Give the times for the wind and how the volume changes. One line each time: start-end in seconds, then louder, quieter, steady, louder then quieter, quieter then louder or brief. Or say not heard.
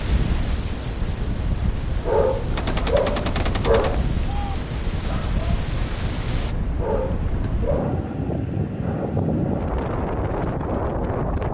0.0-11.4 louder.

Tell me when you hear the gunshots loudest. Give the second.
3 s.